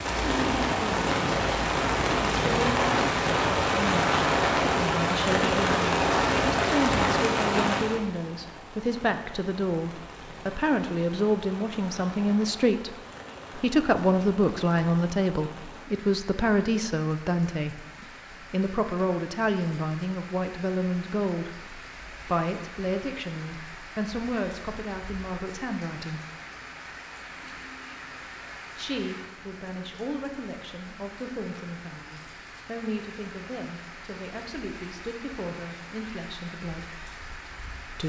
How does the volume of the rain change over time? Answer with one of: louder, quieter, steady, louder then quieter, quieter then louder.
quieter.